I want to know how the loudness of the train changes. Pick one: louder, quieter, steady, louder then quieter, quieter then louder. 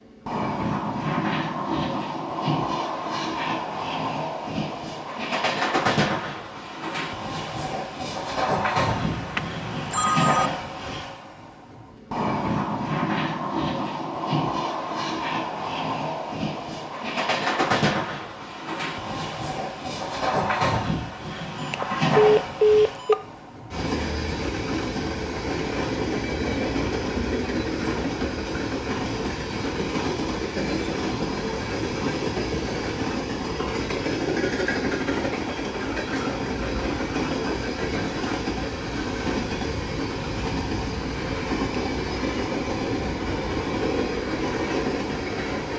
steady.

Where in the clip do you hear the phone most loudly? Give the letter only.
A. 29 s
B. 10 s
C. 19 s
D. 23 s
D.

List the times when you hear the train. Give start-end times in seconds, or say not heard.
0.1-45.7.